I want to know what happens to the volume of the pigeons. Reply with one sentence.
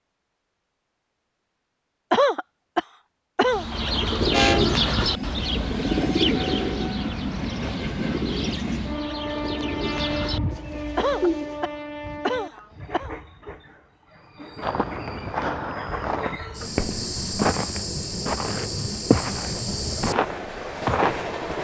The loudness of the pigeons goes down.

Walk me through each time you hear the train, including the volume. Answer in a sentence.
You can hear the train from 4.2 to 21.5 s, getting quieter then louder.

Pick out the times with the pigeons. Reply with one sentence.
The pigeons can be heard from 3.5 to 11.6 s.